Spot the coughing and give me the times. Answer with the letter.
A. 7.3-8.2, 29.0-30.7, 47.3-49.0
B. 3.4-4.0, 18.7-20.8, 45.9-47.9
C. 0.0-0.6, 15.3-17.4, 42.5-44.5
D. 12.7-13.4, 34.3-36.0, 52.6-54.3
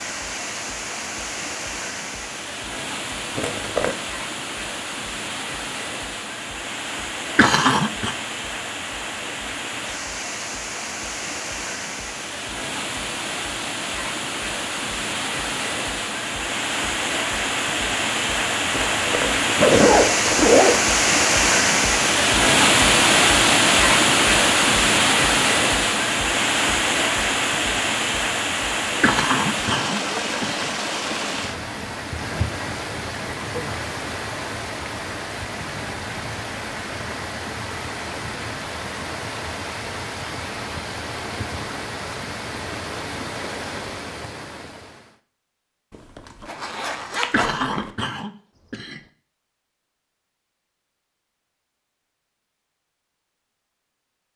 A.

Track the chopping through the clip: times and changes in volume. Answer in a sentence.
You can't hear the chopping here.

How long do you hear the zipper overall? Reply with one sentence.
You can hear the zipper for 5 seconds altogether.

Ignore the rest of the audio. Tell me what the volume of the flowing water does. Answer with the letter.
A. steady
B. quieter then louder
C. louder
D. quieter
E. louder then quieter
E.